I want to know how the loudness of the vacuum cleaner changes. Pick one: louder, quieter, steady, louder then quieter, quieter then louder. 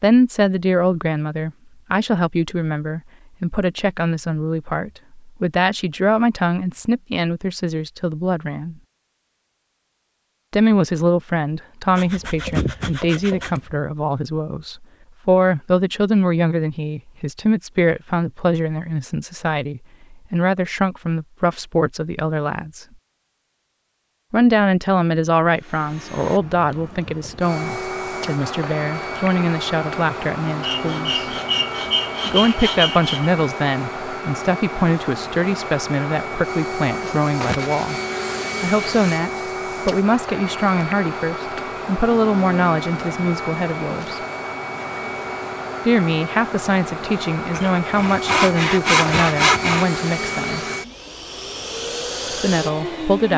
steady.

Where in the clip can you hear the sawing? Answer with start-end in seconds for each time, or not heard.
11.9-13.8, 30.6-33.3, 47.5-49.9.